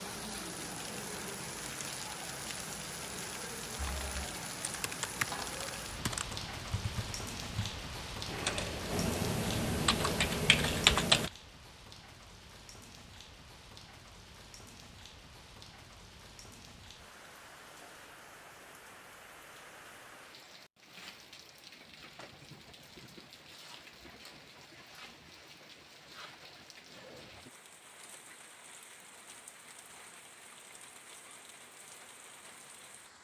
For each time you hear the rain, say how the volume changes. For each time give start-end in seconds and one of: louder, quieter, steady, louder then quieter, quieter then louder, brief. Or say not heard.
0.0-33.2 quieter.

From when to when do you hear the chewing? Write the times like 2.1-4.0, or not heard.
not heard.